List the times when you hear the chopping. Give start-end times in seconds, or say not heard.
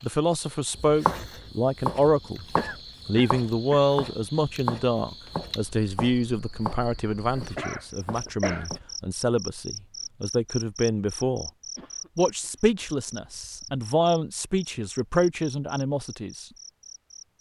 0.8-8.8.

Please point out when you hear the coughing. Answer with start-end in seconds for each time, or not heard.
2.5-3.8, 7.3-8.7, 11.8-13.2.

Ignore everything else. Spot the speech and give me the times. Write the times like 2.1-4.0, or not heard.
0.0-2.5, 3.0-11.5, 12.2-16.4.